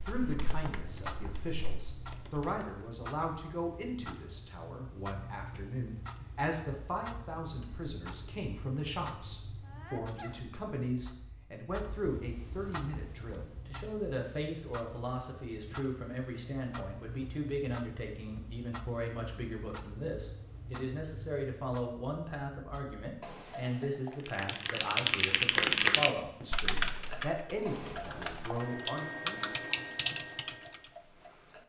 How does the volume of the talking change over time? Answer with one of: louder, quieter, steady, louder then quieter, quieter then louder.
steady.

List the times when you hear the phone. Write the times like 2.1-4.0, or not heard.
not heard.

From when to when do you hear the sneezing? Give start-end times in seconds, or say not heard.
9.6-10.4.